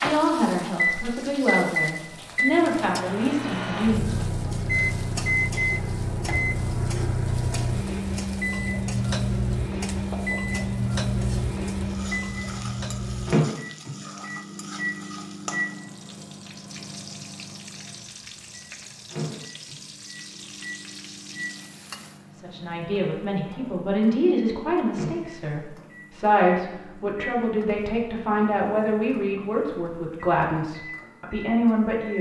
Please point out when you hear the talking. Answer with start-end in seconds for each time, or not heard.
0.0-4.5, 22.3-32.1.